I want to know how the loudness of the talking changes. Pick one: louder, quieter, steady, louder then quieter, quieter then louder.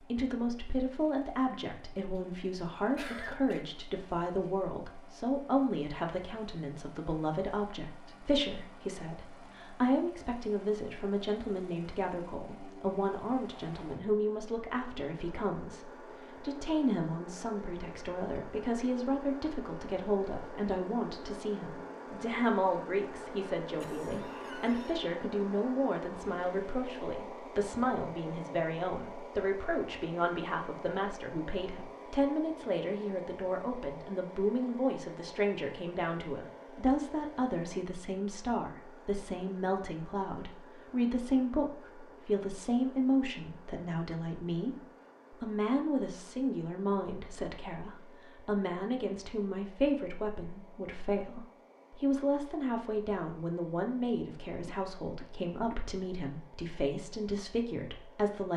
steady.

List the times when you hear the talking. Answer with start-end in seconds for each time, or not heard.
0.0-58.5.